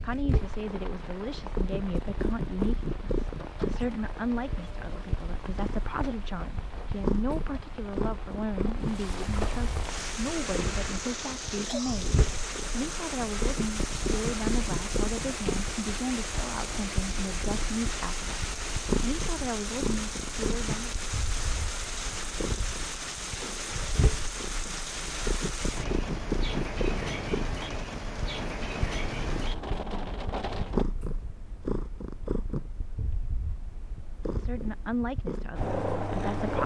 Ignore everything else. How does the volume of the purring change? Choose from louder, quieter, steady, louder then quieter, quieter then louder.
steady.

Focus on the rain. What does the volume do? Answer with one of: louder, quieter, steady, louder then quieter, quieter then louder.
louder.